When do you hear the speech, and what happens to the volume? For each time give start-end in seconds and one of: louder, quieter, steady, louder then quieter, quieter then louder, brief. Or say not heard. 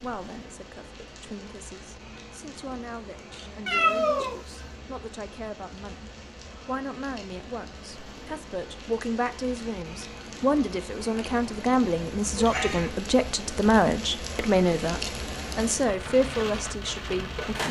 0.0-17.6 louder.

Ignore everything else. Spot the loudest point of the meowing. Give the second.
4 s.